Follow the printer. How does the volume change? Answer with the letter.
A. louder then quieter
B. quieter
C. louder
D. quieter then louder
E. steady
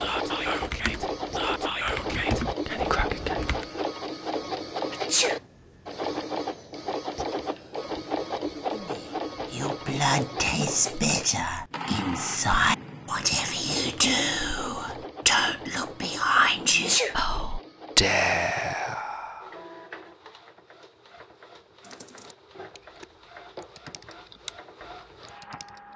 B.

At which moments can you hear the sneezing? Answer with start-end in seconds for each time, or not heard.
4.9-5.3, 16.7-17.1.